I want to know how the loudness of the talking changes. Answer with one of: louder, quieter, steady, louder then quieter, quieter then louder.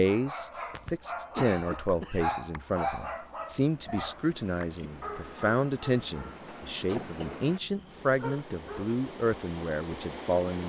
steady.